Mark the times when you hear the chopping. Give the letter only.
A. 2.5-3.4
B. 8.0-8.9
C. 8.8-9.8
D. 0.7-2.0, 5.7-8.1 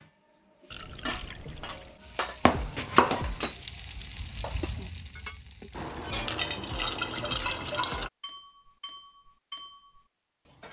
A.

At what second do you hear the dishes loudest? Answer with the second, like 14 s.
3 s.